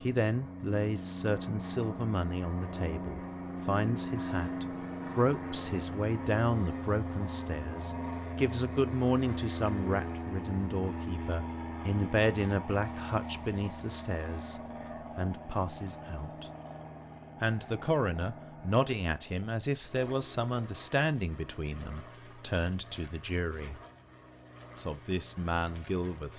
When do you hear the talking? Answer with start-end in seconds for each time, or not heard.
0.0-16.5, 17.4-23.8, 24.8-26.3.